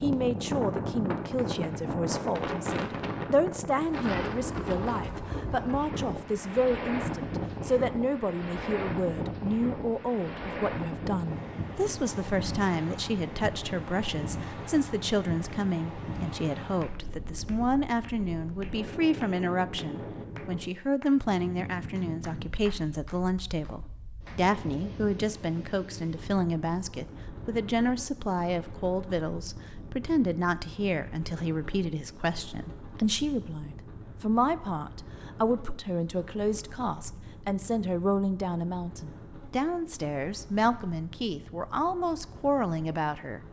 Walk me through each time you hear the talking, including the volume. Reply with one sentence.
The talking can be heard from 0.0 to 43.4 s, at a steady volume.